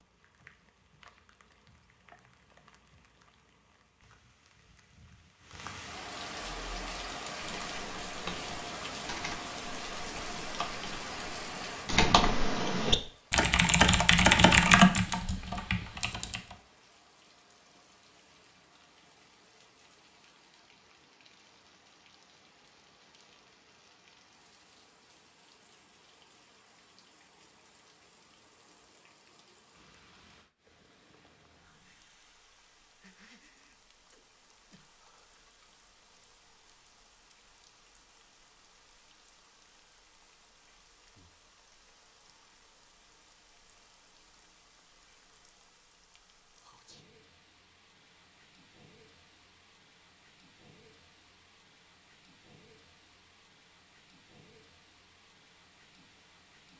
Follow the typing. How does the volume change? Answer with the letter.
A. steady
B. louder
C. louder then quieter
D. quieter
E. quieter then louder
B.